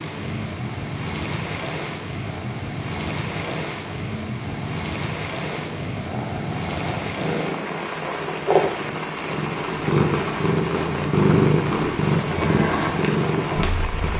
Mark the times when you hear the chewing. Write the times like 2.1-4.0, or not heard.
not heard.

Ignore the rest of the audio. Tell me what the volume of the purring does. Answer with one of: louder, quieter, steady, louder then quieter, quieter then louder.
louder.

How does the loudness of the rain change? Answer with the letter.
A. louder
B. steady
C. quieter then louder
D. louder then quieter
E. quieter
B.